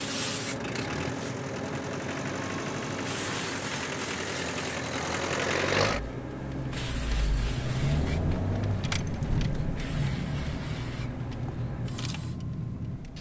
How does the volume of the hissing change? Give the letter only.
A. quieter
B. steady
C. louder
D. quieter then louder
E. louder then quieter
A.